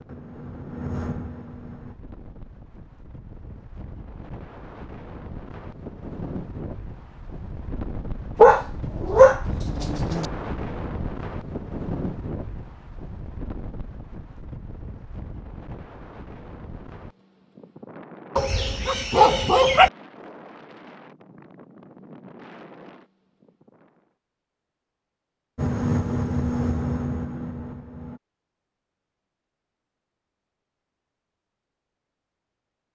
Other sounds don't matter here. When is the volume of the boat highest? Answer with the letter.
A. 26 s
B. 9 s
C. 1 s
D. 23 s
A.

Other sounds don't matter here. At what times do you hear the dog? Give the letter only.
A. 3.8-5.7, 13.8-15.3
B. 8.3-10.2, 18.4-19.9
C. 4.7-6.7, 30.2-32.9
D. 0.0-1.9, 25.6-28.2
B.